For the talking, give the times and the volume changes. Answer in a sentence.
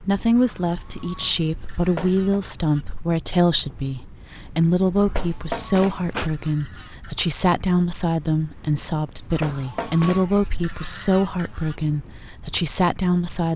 You can hear the talking from 0.0 to 13.5 s, at a steady volume.